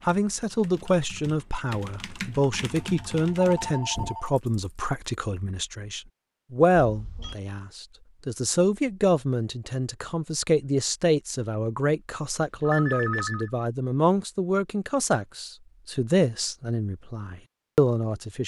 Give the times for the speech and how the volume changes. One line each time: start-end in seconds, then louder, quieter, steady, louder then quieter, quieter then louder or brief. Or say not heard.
0.1-18.4 steady.